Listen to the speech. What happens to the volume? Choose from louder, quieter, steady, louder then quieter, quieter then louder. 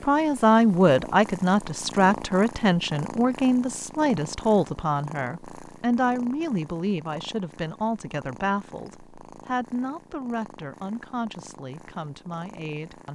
quieter.